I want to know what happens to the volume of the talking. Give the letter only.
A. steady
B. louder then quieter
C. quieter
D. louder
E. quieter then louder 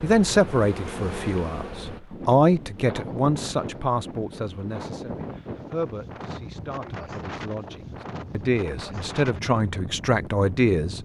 E.